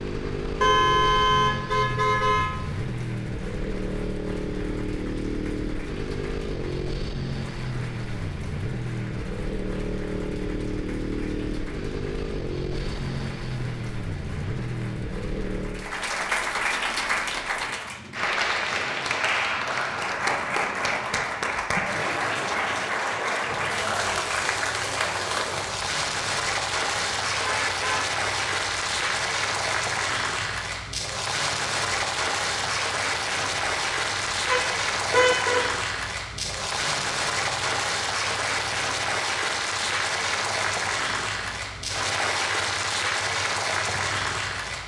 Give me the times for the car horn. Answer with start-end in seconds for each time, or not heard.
0.6-2.5, 27.4-28.1, 34.5-35.6.